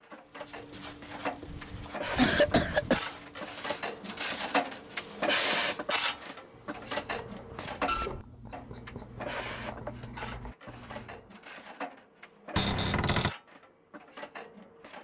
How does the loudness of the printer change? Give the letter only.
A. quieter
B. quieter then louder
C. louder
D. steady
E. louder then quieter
E.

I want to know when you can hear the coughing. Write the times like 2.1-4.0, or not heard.
1.4-3.0.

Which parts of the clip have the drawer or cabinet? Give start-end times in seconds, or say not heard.
12.6-13.3.